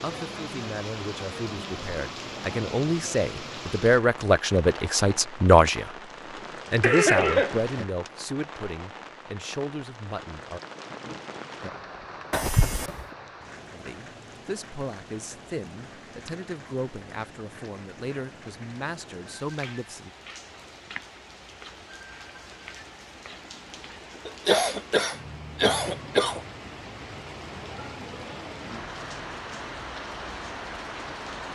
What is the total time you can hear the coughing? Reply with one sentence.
You can hear the coughing for 4 seconds altogether.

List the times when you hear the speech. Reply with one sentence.
You can hear the speech from 0.0 to 5.9 s, from 6.7 to 10.6 s and from 13.7 to 20.1 s.